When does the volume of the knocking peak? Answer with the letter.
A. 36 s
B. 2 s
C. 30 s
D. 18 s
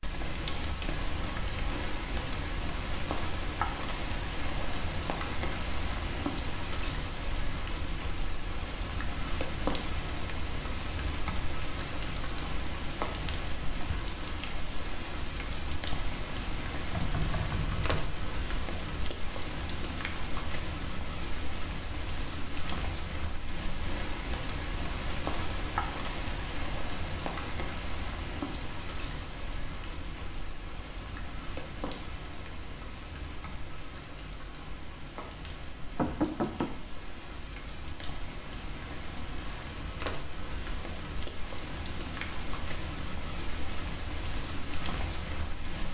A.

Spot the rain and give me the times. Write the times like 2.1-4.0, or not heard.
0.0-45.8.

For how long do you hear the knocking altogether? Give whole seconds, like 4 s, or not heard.
2 s.